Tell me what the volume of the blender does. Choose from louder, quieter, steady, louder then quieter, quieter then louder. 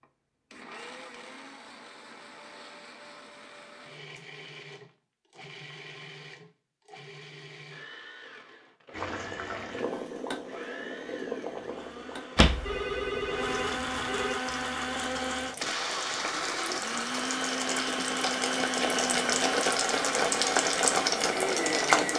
louder.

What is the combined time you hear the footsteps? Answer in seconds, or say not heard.
not heard.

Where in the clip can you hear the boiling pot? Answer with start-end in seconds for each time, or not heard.
8.9-22.1.